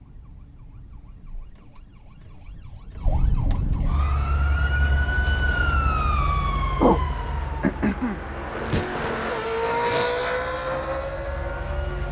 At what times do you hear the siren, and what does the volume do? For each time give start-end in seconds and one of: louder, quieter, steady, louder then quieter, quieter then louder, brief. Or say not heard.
0.0-12.0 louder then quieter.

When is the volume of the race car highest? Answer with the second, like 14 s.
10 s.